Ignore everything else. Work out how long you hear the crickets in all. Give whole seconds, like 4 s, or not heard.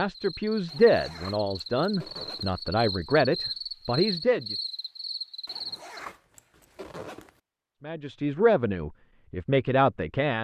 6 s.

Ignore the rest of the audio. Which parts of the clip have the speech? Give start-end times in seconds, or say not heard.
0.0-4.5, 7.8-10.4.